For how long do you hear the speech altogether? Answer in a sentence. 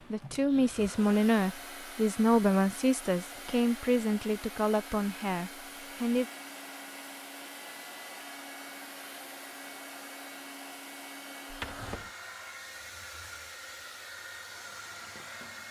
The speech can be heard for 6 seconds in total.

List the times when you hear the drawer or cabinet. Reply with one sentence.
The drawer or cabinet can be heard from 11.5 to 12.1 s.